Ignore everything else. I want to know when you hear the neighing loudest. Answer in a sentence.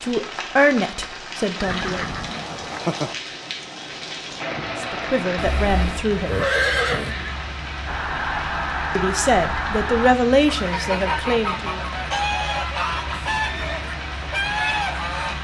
The volume of the neighing peaks at 7 seconds.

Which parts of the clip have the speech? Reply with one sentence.
You can hear the speech from 0.0 to 2.0 s, from 4.8 to 6.5 s and from 8.9 to 11.8 s.